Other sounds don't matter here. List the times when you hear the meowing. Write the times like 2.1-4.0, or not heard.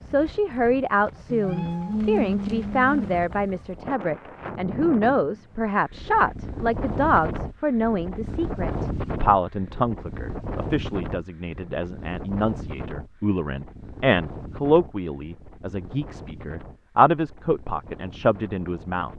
1.2-3.2.